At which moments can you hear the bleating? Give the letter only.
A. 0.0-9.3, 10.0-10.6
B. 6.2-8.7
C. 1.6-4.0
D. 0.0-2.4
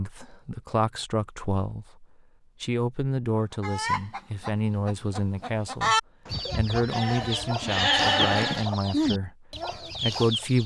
B.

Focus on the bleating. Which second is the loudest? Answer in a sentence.
The volume of the bleating peaks at 8 seconds.